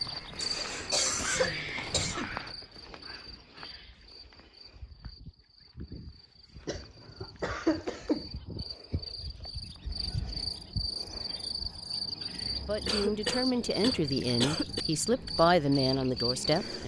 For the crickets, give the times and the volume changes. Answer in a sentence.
You can hear the crickets from 0.0 to 16.8 s, getting quieter then louder.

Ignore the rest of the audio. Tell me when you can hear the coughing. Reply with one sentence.
The coughing can be heard from 0.4 to 2.3 s, from 6.7 to 8.2 s and from 12.8 to 14.8 s.